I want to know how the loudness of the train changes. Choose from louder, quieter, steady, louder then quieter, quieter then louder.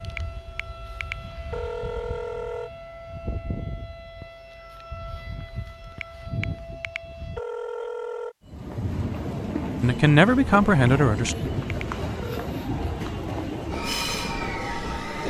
steady.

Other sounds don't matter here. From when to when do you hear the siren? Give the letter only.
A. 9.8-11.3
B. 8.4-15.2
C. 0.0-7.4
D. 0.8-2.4
C.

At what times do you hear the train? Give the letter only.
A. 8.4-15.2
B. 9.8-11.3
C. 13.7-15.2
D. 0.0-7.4
A.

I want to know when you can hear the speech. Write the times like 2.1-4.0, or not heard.
9.8-11.3.